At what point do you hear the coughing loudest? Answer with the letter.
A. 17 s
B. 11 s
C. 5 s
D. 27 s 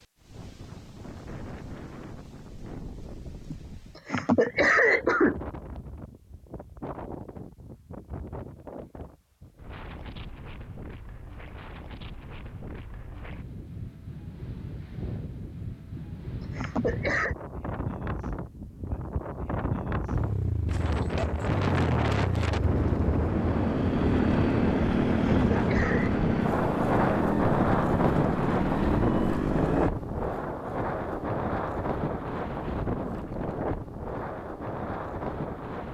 C.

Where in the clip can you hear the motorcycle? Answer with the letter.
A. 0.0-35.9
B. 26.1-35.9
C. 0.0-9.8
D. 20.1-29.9
D.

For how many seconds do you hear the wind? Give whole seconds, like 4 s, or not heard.
36 s.